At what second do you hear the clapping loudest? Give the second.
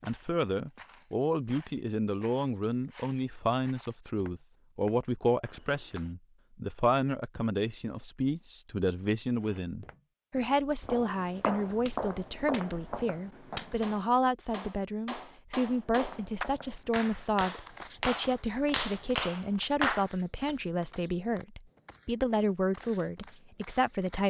20 s.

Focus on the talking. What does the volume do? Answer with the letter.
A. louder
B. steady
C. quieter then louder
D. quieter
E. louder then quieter
B.